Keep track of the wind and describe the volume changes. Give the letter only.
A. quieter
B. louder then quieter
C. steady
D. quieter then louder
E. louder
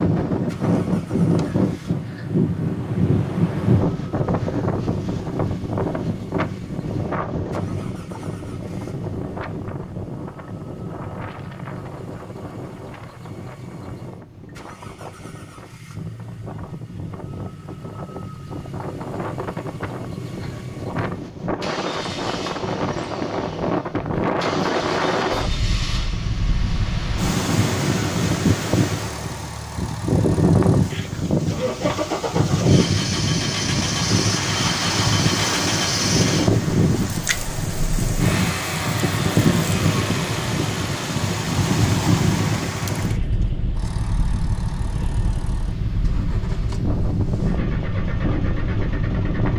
D.